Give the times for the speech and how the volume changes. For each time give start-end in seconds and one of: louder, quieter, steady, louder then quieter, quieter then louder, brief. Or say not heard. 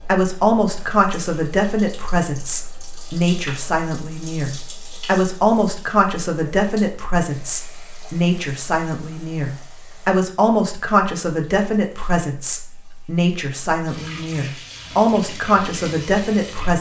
0.0-16.7 steady.